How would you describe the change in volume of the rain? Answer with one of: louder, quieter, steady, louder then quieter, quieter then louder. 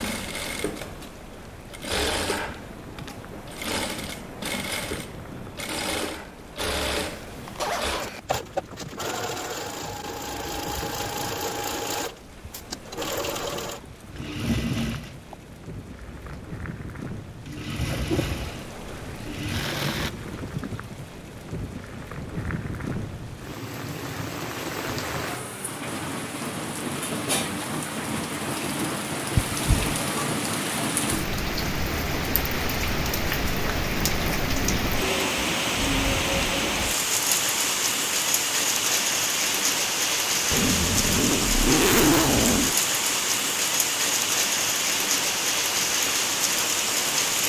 louder.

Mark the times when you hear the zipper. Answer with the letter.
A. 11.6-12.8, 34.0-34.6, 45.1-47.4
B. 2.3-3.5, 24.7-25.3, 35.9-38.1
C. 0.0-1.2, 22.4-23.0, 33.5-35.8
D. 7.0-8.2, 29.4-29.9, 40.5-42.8
D.